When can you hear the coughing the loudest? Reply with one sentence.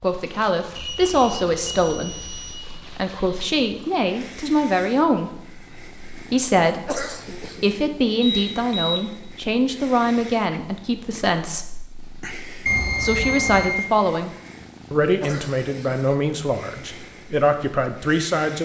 The loudest moment of the coughing is at 7 seconds.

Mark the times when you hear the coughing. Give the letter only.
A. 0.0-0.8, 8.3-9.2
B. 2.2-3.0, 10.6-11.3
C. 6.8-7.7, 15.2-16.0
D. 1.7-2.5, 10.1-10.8
C.